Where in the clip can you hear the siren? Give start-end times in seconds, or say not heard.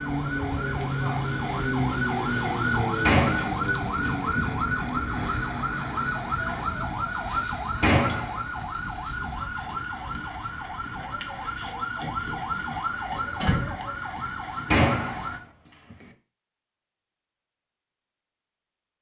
0.0-15.4.